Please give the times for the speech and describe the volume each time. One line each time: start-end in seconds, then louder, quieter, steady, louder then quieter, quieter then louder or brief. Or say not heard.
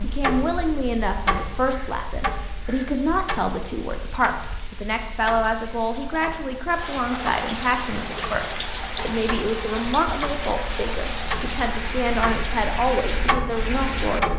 0.0-14.3 steady.